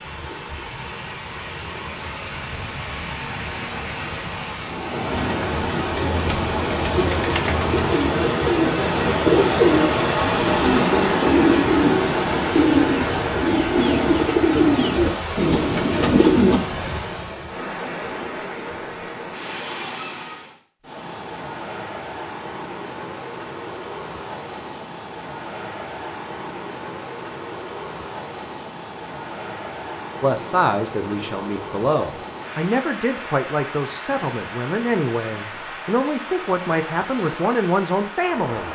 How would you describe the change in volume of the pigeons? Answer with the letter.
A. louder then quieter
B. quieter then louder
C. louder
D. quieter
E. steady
C.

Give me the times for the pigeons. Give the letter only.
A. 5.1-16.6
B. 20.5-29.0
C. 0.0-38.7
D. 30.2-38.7
A.